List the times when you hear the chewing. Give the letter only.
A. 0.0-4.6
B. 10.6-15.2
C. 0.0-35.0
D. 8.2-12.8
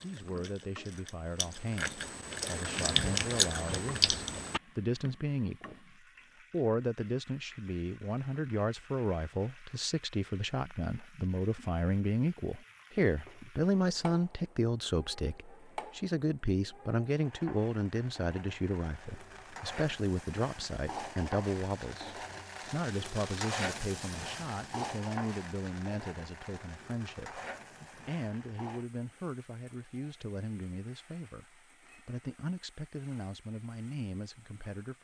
A.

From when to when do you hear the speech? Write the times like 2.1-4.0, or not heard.
0.0-35.0.